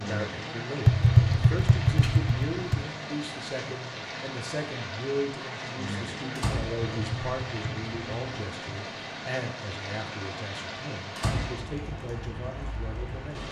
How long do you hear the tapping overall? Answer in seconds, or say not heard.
4 s.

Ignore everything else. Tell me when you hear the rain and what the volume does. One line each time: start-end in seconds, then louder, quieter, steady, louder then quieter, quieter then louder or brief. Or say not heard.
0.0-13.4 steady.